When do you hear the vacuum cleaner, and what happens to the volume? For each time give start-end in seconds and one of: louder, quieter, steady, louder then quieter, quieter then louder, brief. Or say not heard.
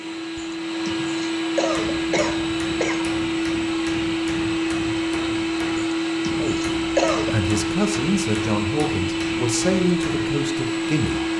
0.0-11.3 steady.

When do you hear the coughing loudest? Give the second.
7 s.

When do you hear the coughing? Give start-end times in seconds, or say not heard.
0.3-3.0, 5.8-7.3.